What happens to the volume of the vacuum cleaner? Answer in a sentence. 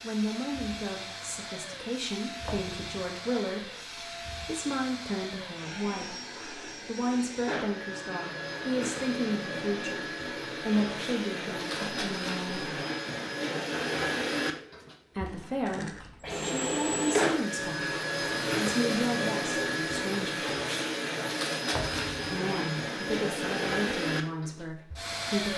The volume of the vacuum cleaner goes up.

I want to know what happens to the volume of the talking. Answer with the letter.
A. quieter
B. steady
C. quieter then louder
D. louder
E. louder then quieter
B.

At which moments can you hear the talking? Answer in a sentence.
You can hear the talking from 0.0 to 12.8 s, from 15.2 to 20.6 s and from 22.2 to 25.5 s.